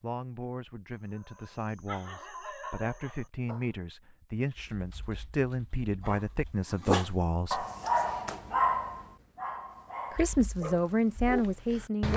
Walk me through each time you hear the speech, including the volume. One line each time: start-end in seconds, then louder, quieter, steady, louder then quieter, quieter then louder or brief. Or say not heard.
0.0-7.7 louder
10.1-12.1 brief.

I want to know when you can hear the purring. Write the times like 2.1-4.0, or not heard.
not heard.